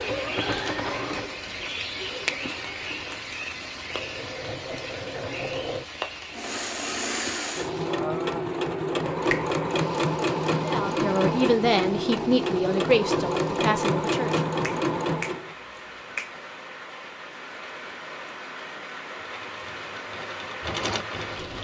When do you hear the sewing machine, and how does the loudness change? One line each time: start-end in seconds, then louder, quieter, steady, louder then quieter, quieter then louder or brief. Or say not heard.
0.0-15.6 louder
19.2-21.5 brief.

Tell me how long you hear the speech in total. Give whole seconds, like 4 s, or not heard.
4 s.